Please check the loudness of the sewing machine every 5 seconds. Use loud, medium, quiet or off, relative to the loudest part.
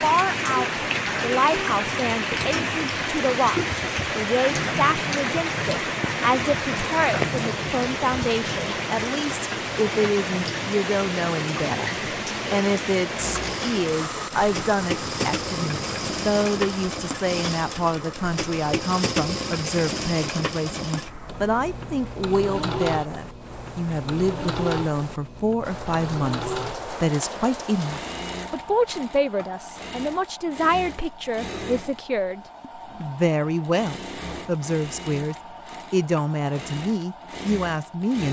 off, off, loud, loud, loud, medium, medium, medium.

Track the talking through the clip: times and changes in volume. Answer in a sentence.
You can hear the talking from 0.0 to 38.2 s, at a steady volume.